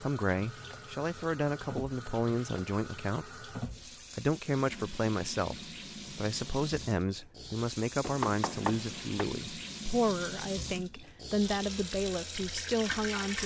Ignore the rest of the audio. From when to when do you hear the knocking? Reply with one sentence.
The knocking can be heard from 8.0 to 9.2 s.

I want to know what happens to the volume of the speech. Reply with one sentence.
The loudness of the speech stays about the same.